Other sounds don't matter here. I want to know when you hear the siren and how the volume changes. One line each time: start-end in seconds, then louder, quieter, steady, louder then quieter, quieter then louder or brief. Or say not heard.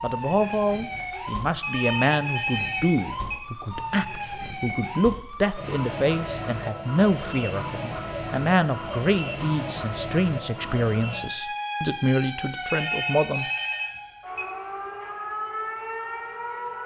0.0-16.8 steady.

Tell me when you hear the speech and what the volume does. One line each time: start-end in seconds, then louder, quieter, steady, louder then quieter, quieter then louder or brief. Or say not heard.
0.0-13.4 steady.